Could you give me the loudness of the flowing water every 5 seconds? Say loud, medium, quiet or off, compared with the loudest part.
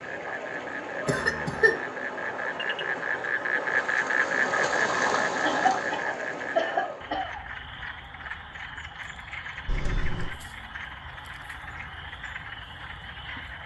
loud, loud, off.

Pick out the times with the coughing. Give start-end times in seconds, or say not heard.
1.1-1.8, 5.4-7.4, 9.7-10.3.